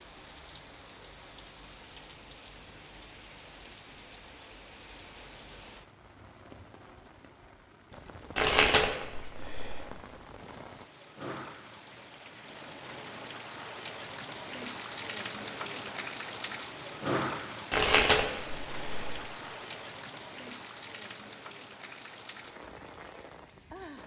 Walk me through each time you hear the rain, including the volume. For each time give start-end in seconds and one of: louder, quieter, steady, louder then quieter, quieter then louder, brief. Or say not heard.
0.0-24.0 louder then quieter.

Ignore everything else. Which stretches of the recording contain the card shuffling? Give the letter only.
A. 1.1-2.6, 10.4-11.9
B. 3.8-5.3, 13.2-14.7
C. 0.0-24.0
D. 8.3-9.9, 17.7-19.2
D.